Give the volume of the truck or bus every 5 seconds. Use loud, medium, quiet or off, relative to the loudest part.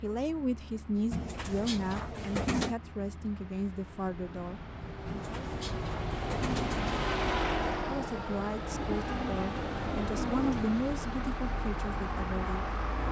quiet, loud, loud.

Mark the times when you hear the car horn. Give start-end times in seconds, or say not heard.
not heard.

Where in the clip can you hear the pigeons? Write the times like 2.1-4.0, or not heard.
1.1-2.8, 5.0-7.0, 8.9-10.8.